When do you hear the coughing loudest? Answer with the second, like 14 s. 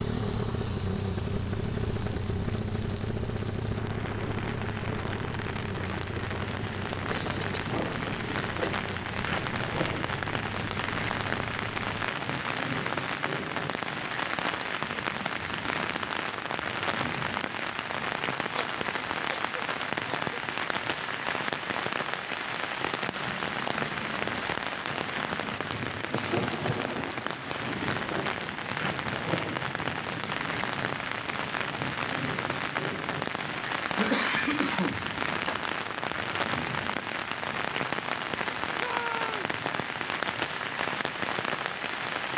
34 s.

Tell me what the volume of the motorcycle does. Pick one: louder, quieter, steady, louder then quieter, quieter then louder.
quieter.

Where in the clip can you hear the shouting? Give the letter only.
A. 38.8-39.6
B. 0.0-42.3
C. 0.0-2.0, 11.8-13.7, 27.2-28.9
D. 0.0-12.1
A.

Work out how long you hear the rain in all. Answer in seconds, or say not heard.
42 s.